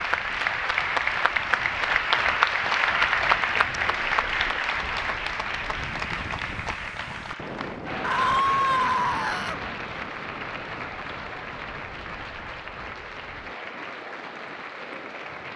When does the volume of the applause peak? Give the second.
3 s.